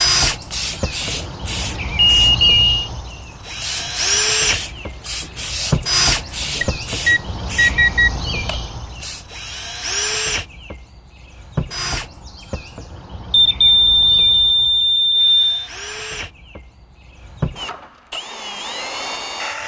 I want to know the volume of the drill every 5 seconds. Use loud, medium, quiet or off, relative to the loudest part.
loud, loud, medium, medium.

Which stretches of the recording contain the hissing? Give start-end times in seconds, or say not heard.
0.1-9.2.